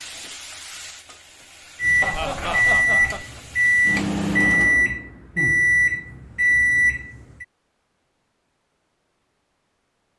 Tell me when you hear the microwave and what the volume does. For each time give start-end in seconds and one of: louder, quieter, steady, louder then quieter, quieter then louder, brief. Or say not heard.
1.8-7.5 steady.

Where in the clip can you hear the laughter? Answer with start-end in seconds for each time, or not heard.
2.0-3.2.